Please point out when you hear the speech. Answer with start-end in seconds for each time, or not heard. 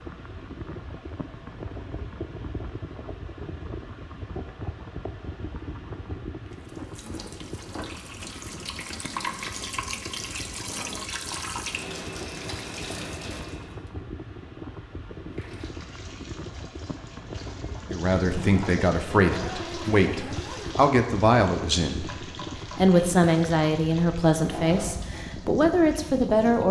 17.9-26.6.